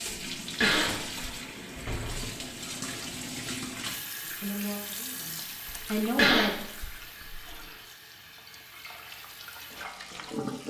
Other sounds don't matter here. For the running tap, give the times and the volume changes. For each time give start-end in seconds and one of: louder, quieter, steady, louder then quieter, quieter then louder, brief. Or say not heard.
0.0-10.6 quieter.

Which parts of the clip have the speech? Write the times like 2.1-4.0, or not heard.
4.4-6.5.